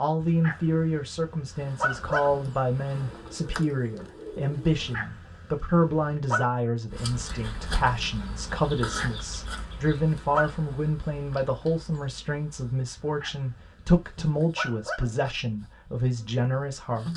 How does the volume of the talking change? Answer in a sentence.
The volume of the talking stays about the same.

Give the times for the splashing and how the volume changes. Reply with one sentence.
You can't hear the splashing here.